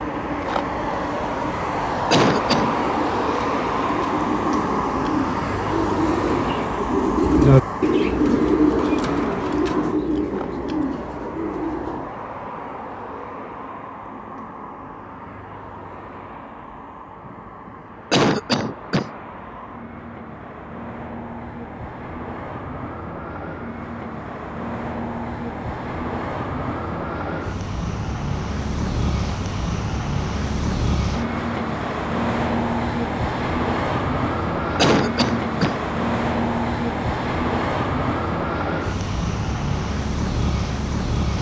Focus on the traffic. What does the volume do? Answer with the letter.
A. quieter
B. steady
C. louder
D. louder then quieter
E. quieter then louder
E.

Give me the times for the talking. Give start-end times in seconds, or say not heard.
not heard.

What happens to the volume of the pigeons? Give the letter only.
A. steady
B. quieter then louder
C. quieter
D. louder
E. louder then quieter
E.